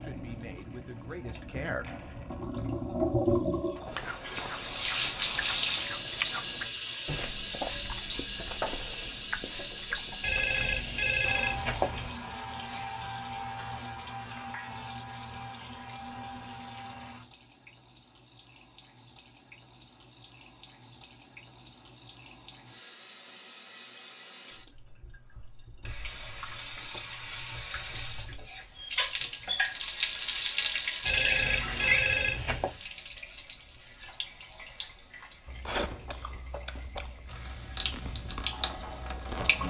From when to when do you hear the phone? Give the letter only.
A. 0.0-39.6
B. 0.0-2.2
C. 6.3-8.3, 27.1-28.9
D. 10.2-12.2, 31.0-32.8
D.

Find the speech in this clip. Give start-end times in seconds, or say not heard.
0.0-2.2.